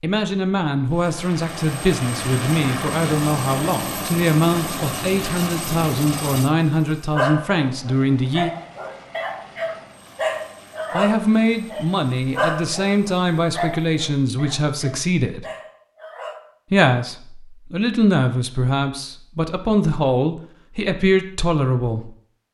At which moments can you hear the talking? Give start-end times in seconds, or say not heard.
0.0-8.5, 10.9-15.4, 16.7-22.1.